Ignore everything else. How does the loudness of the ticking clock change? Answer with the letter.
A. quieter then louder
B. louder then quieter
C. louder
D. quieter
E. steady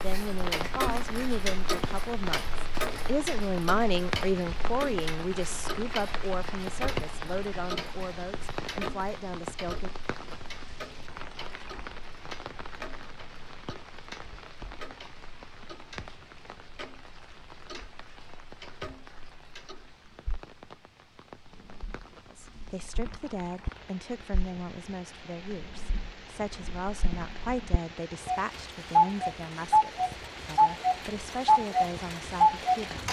A.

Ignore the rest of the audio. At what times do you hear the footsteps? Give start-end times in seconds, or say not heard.
not heard.